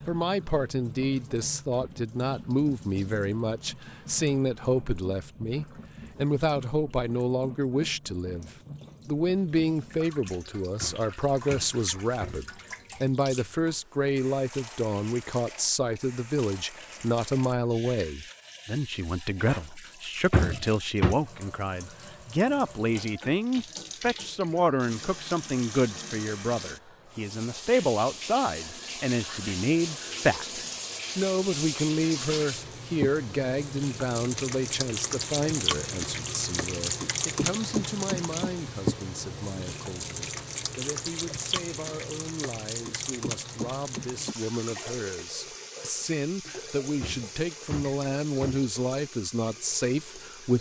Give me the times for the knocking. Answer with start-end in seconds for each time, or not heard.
10.8-12.5, 20.3-21.1, 47.0-48.7.